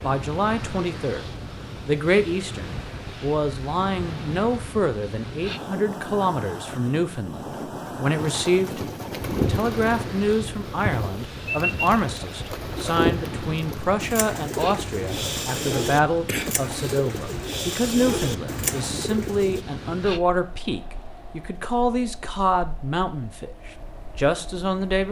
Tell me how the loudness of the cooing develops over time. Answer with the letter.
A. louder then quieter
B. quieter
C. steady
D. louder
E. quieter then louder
C.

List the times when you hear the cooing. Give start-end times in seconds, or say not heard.
8.2-19.6.